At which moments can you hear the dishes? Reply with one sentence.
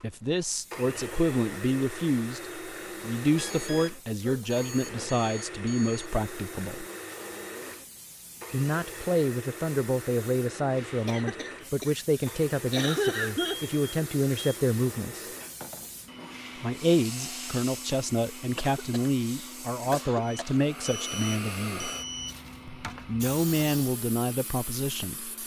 The dishes can't be heard in this clip.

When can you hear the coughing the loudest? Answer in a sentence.
The loudest moment of the coughing is at 13 seconds.